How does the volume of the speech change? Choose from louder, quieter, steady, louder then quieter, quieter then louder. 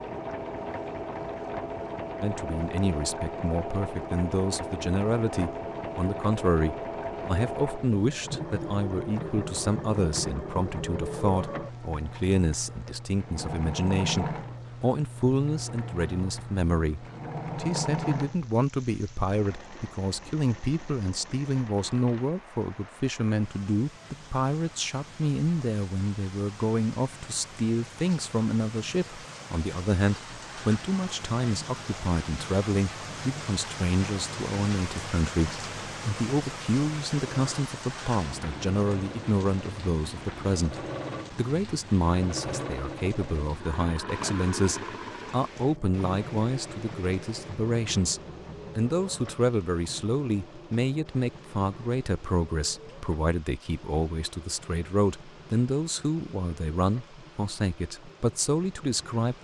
steady.